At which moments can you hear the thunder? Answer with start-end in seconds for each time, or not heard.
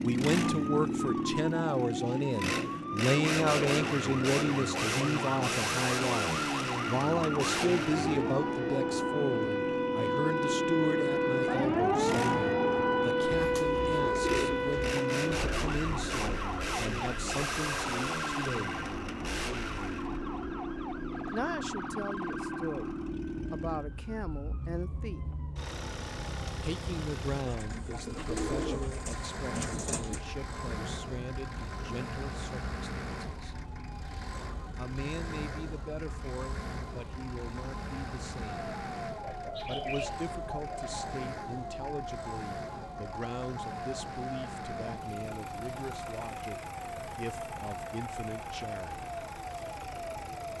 not heard.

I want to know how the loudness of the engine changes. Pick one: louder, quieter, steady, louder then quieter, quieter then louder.
quieter.